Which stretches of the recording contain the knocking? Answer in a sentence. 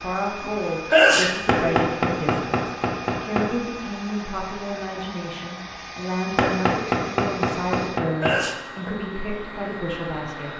You can hear the knocking from 1.4 to 3.5 s and from 6.3 to 8.4 s.